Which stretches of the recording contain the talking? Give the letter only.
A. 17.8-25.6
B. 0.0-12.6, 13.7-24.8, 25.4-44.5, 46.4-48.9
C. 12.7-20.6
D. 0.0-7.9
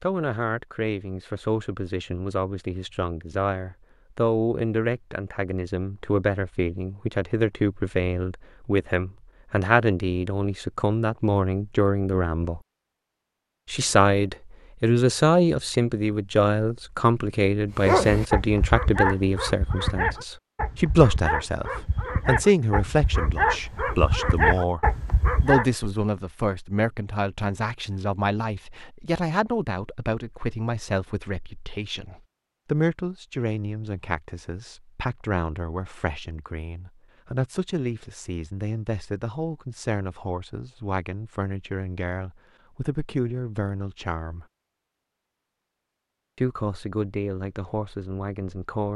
B.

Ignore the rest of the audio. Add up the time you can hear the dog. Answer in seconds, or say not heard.
8 s.